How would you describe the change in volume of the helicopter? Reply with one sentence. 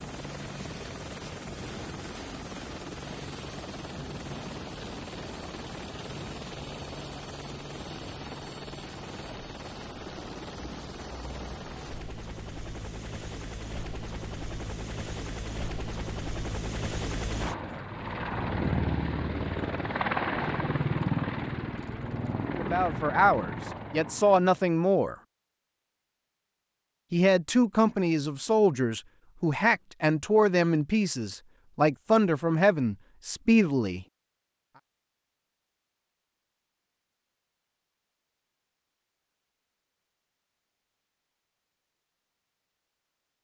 The loudness of the helicopter goes up.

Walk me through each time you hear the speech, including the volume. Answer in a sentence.
The speech can be heard briefly from 22.6 to 25.1 s; and from 27.1 to 34.0 s, at a steady volume.